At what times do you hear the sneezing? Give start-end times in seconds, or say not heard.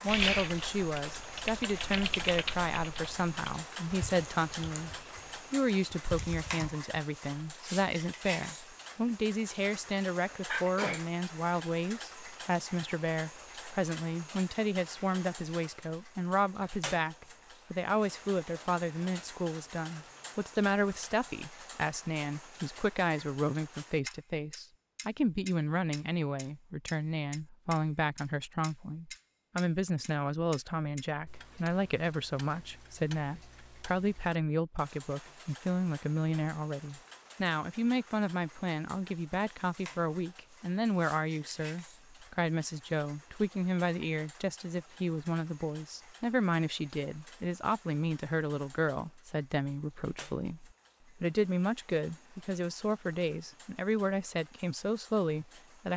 10.4-11.1.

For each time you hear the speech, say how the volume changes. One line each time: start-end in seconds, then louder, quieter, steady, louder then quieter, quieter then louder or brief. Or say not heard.
0.0-55.9 steady.